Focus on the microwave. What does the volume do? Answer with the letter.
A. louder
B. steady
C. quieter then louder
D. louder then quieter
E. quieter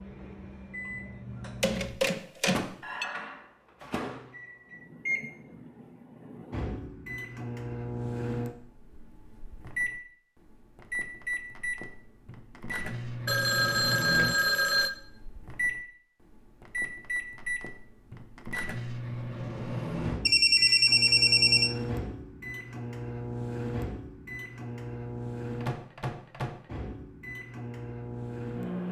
B.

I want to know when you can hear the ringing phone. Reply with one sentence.
The ringing phone can be heard from 1.6 to 3.0 s, from 13.2 to 14.9 s and from 20.2 to 21.7 s.